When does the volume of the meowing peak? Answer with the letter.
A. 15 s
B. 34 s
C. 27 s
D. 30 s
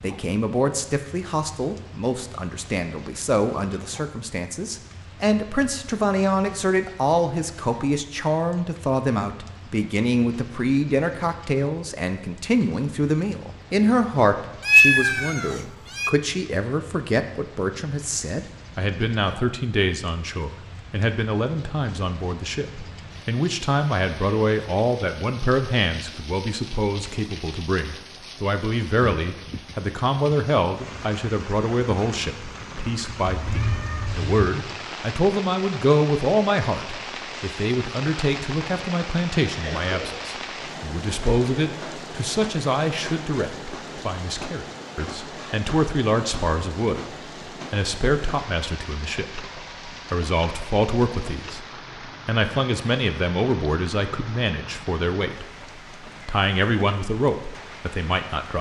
A.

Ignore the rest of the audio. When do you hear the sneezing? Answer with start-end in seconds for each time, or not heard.
39.5-40.1.